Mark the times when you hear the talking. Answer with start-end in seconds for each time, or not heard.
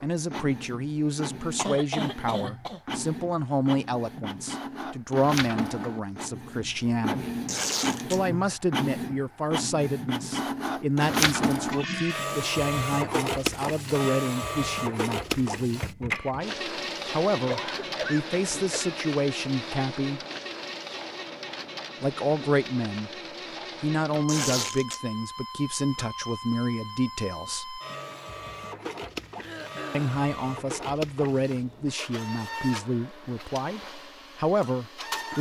0.0-7.3, 8.1-20.2, 22.0-23.1, 23.8-27.8, 29.9-35.3.